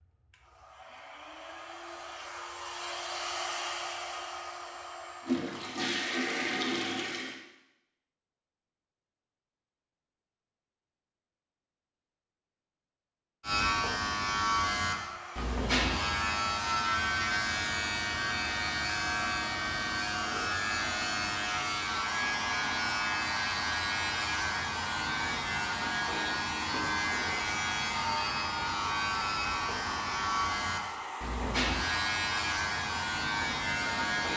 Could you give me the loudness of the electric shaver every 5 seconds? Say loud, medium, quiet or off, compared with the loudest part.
off, off, loud, loud, loud, loud, loud.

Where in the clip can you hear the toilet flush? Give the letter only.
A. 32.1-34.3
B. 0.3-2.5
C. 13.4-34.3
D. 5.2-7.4
D.